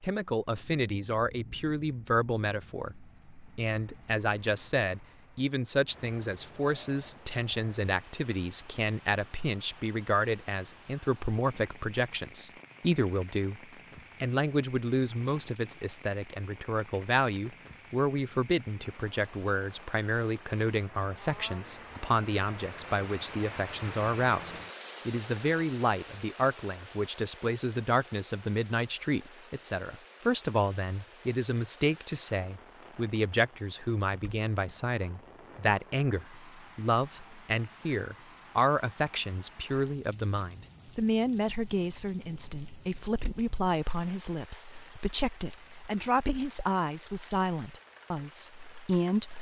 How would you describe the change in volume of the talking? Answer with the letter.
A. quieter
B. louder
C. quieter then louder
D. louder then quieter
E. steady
E.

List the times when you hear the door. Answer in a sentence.
The door can't be heard in this clip.